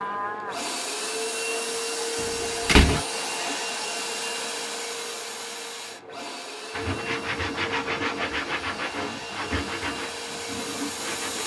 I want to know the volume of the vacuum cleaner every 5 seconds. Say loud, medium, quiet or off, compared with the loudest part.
loud, medium, loud.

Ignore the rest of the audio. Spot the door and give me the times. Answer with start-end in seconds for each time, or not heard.
2.1-3.0.